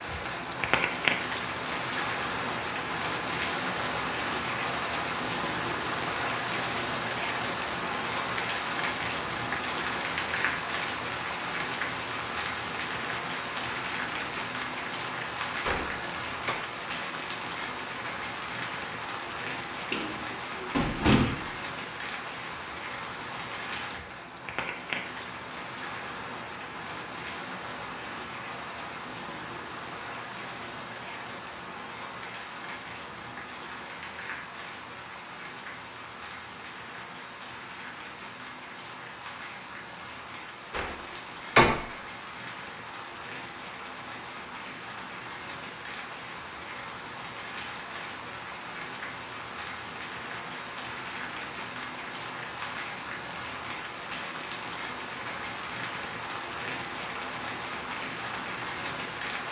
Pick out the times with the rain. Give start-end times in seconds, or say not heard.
0.0-59.4.